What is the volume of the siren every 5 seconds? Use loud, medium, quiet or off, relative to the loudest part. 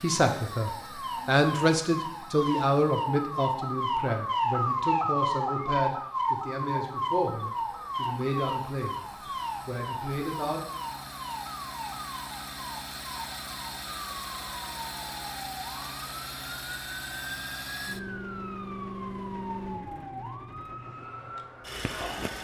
loud, loud, medium, medium, medium.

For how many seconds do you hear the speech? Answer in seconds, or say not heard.
10 s.